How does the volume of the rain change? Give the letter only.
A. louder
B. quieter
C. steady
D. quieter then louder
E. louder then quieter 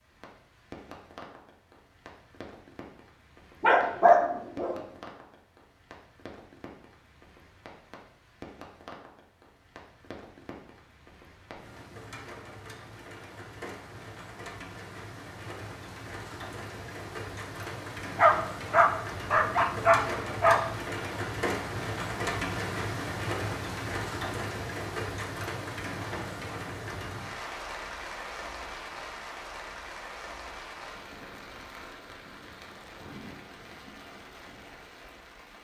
E.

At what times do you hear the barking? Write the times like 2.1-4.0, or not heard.
3.6-4.8, 18.1-20.6.